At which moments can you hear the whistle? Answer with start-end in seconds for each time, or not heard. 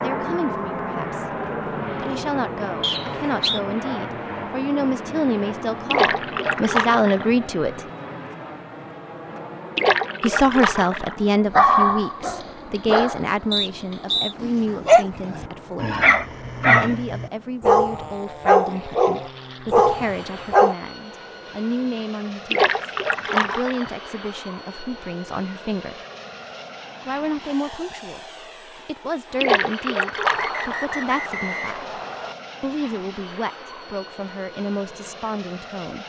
2.8-3.6, 13.5-14.3, 30.3-32.4.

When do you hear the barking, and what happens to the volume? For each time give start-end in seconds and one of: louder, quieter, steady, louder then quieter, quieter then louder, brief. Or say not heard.
11.5-13.2 brief
14.4-20.8 steady.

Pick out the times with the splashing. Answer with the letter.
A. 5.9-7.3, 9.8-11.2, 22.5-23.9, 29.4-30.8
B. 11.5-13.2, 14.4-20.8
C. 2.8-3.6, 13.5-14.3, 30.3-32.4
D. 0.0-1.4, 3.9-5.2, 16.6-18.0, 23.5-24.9
A.